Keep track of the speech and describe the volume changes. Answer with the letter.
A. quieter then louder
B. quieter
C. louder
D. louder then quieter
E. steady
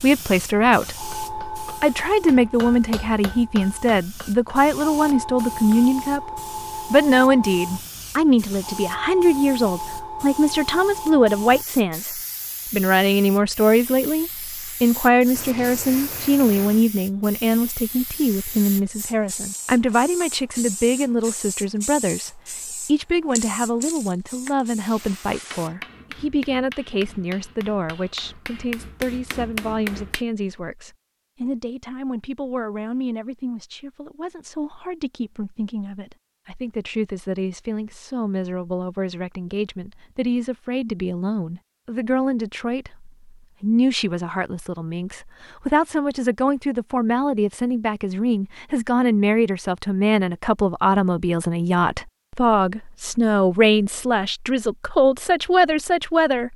A.